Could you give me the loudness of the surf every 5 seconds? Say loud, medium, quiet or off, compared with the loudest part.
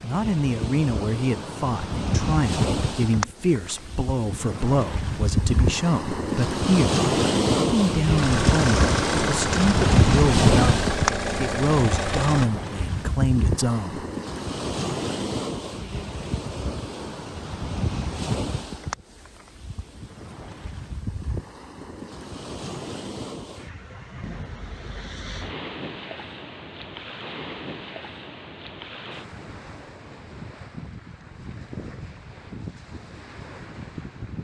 medium, loud, loud, medium, quiet, quiet, quiet.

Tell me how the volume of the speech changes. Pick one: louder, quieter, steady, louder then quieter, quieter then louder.
steady.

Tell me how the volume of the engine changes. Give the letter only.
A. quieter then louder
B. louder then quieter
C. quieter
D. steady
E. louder
D.